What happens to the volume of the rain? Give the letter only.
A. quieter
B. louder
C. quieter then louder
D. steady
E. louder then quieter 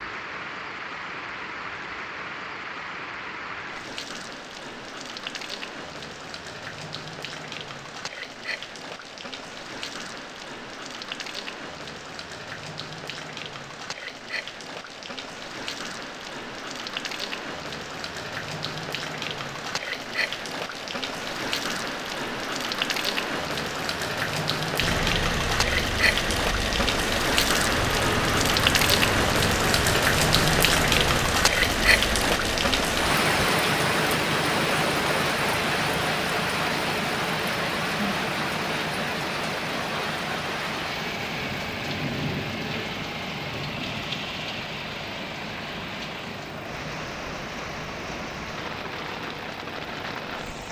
E.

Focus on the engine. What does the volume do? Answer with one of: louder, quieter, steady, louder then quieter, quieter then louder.
quieter.